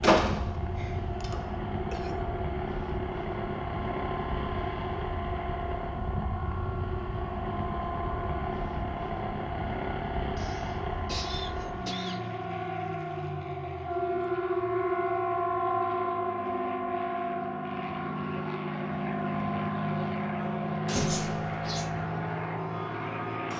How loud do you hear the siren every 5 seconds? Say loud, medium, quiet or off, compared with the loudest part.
medium, medium, loud, loud, medium.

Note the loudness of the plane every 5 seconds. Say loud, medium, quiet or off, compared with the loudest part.
loud, loud, medium, loud, loud.